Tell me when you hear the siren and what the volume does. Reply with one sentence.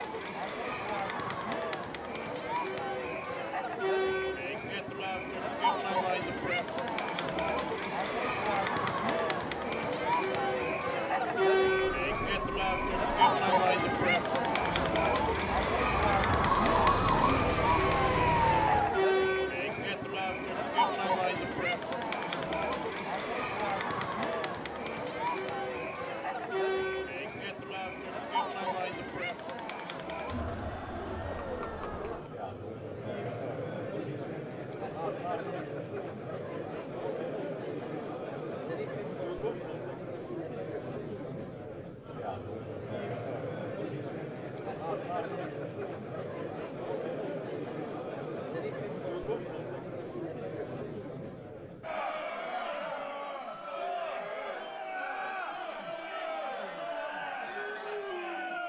The siren can be heard from 11.9 to 19.1 s, getting louder.